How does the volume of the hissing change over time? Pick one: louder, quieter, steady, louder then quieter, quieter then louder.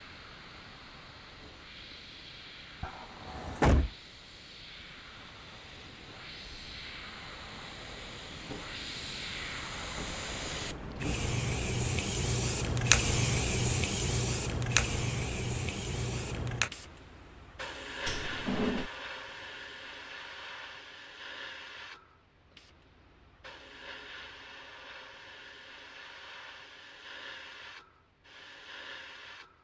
louder then quieter.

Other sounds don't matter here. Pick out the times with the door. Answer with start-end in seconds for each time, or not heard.
2.8-3.9, 18.1-18.9.